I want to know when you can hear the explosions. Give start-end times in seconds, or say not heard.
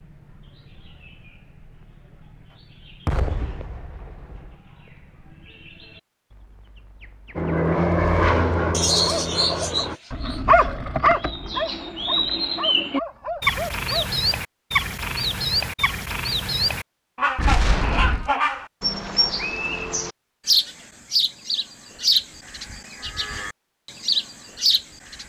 3.0-4.5, 17.4-18.3.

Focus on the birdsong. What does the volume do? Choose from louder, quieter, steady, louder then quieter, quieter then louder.
louder.